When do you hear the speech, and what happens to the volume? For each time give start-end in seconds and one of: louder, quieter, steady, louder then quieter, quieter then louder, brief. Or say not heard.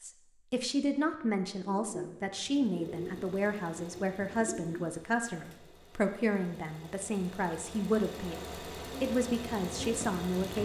0.0-10.5 steady.